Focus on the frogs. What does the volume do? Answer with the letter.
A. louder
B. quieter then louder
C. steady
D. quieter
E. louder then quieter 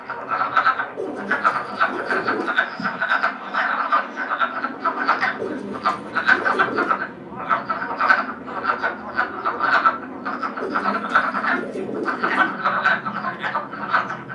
C.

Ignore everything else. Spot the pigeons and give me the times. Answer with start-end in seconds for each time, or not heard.
0.9-2.6, 5.3-7.0, 10.6-12.6.